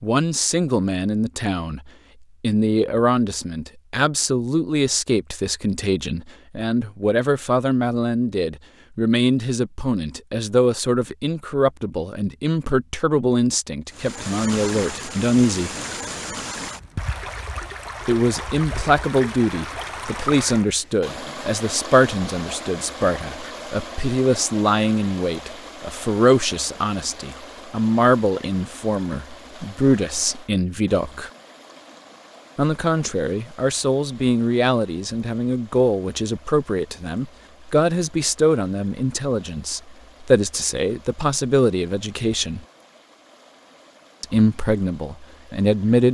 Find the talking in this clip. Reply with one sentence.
You can hear the talking from 0.0 to 15.7 s, from 18.1 to 31.3 s, from 32.5 to 42.6 s and from 44.2 to 46.0 s.